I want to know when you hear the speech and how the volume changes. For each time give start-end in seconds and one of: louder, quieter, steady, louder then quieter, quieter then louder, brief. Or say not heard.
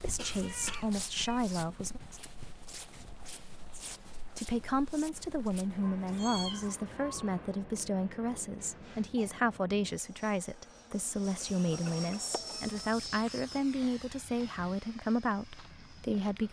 0.0-2.0 brief
3.8-16.4 steady.